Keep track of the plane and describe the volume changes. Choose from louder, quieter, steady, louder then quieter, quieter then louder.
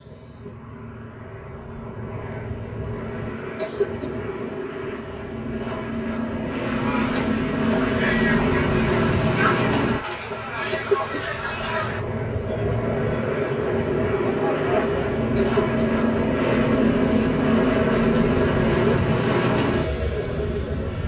louder.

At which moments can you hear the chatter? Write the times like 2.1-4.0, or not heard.
6.5-21.0.